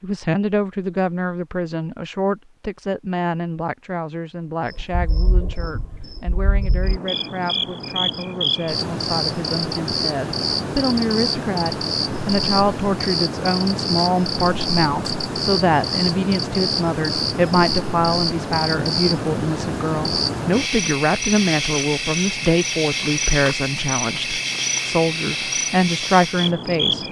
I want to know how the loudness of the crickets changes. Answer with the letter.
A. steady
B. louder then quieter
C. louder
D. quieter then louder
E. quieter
A.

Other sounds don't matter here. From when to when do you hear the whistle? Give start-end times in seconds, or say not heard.
not heard.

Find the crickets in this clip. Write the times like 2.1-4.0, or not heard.
4.7-27.0.